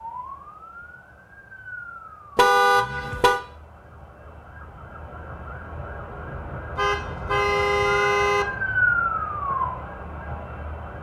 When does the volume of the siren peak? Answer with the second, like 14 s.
9 s.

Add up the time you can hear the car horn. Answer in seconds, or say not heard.
3 s.